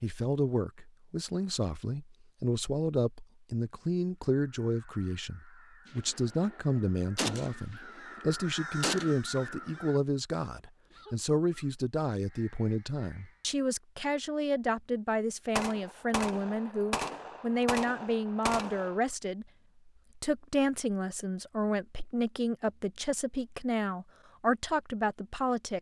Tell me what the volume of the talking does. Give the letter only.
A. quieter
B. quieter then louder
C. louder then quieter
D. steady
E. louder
D.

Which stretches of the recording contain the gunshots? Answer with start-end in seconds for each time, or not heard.
5.8-9.8, 15.6-19.0.